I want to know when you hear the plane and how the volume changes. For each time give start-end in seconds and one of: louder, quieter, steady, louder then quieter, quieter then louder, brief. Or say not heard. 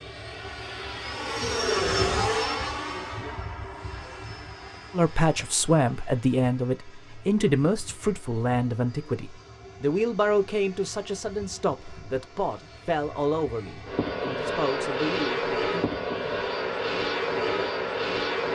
0.0-18.4 quieter then louder.